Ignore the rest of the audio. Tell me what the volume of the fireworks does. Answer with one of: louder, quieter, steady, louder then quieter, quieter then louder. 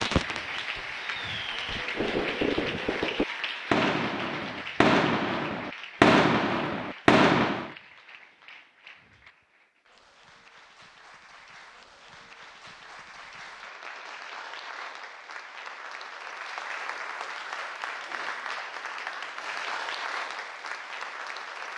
louder.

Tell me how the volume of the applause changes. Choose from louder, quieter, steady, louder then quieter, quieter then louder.
quieter then louder.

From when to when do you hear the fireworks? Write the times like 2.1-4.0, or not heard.
0.0-7.7.